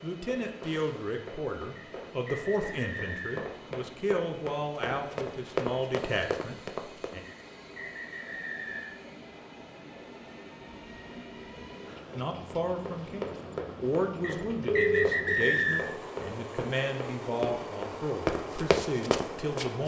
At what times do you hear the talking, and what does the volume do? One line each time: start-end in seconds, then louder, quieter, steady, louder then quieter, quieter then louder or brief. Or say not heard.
0.0-7.2 steady
12.2-19.8 steady.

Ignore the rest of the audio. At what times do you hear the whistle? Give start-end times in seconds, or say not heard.
1.8-3.4, 7.2-9.1, 14.2-15.8.